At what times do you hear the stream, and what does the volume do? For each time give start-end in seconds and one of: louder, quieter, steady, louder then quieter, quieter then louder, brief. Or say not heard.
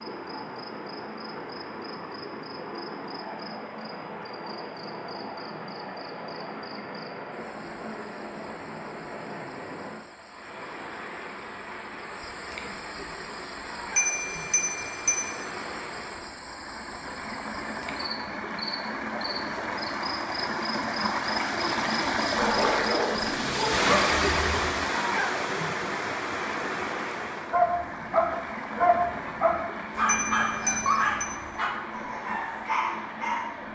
0.0-33.6 louder then quieter.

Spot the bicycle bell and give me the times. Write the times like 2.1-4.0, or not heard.
13.9-15.3, 30.1-31.3.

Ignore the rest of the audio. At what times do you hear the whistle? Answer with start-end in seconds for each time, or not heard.
not heard.